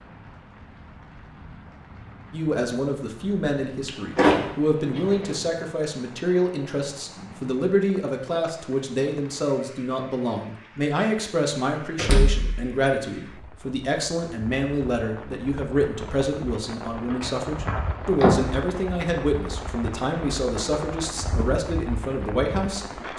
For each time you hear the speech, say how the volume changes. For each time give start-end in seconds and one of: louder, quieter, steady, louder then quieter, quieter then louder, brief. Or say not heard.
2.3-23.1 steady.